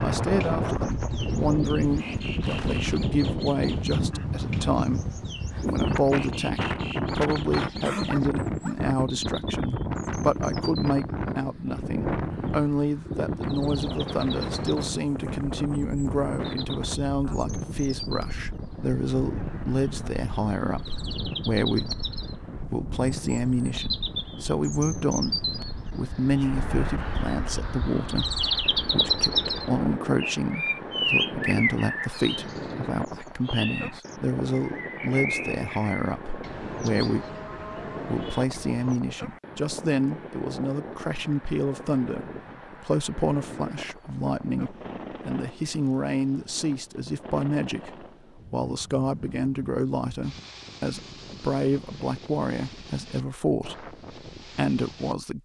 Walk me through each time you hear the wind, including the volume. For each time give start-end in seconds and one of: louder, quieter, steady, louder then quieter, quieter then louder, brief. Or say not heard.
0.0-55.1 quieter.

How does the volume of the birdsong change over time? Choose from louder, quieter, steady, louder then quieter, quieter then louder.
louder.